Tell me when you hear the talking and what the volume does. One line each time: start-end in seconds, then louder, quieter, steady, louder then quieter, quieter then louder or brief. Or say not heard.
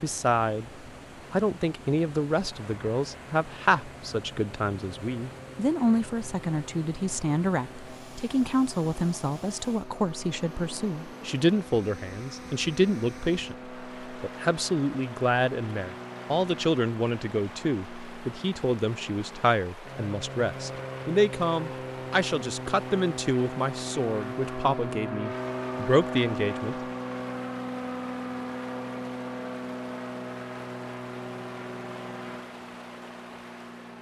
0.0-26.8 steady.